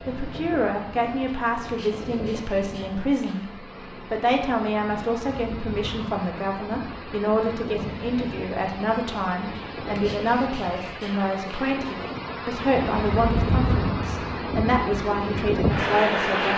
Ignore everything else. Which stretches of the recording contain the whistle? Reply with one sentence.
You can't hear the whistle here.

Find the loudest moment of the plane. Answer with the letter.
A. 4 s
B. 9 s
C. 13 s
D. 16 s
D.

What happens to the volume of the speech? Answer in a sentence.
The loudness of the speech stays about the same.